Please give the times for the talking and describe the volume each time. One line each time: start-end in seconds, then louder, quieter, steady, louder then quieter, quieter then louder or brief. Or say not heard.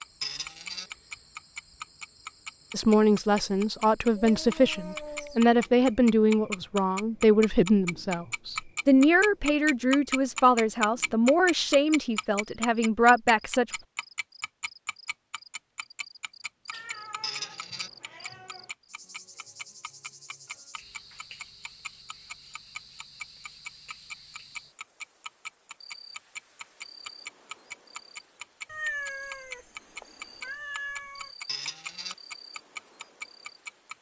2.7-13.7 steady.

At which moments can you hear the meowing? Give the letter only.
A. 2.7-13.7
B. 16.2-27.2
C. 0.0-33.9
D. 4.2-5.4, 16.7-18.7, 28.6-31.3
D.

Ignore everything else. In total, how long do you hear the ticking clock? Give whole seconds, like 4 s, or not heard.
34 s.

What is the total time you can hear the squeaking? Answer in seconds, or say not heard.
2 s.